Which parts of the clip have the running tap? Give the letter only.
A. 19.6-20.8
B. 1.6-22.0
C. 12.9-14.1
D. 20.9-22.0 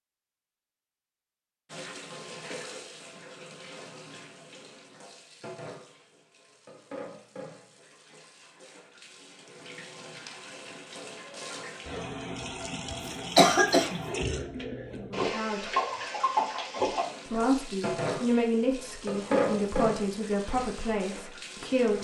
B.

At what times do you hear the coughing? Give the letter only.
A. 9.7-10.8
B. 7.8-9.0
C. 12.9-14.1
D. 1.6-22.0
C.